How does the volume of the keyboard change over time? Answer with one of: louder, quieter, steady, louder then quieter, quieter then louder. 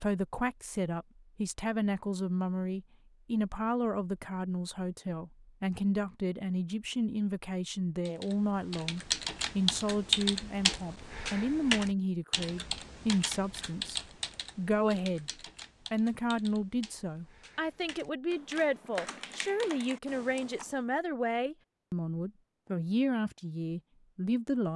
quieter then louder.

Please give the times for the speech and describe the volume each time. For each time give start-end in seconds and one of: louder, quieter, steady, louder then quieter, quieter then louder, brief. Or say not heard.
0.0-15.3 steady
15.9-24.7 steady.